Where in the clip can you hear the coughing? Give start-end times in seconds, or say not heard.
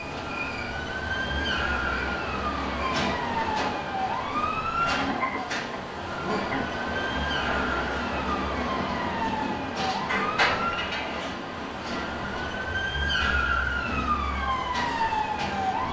4.8-6.8.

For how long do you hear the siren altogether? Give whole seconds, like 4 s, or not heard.
16 s.